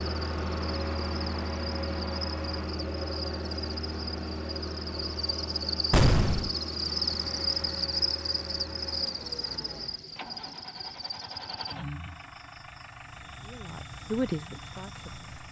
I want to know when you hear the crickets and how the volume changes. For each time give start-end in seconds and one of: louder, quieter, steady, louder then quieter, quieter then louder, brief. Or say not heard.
0.0-15.4 louder then quieter.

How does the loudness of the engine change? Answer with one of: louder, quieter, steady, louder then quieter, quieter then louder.
quieter.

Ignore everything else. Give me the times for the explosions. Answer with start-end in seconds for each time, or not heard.
5.9-6.5.